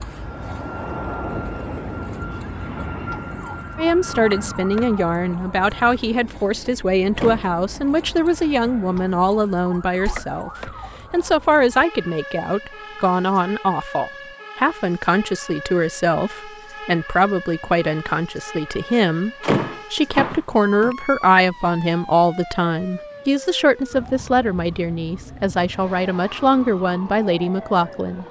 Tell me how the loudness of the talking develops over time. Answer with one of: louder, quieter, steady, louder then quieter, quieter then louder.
steady.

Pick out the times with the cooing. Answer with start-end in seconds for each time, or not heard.
not heard.